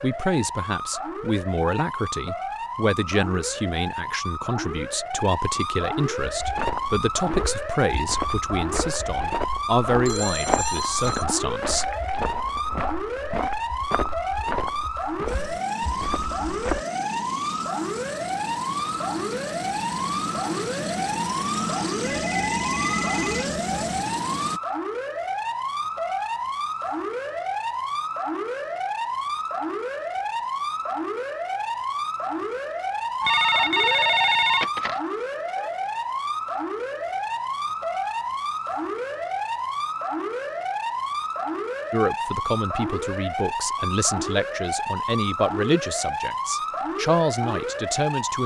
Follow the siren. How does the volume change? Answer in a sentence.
The volume of the siren stays about the same.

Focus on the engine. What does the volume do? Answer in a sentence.
The loudness of the engine goes up.